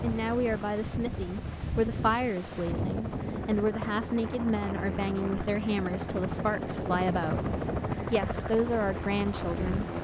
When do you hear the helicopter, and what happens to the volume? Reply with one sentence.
The helicopter can be heard from 0.0 to 9.9 s, getting louder.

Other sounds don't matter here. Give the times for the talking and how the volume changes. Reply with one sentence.
The talking can be heard from 0.0 to 7.5 s, at a steady volume; and briefly from 8.1 to 9.8 s.